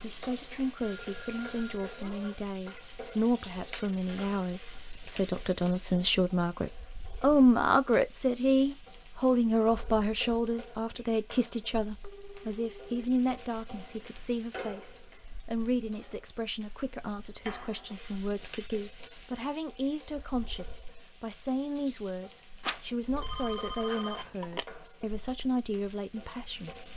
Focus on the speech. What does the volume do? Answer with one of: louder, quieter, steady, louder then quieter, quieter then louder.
louder then quieter.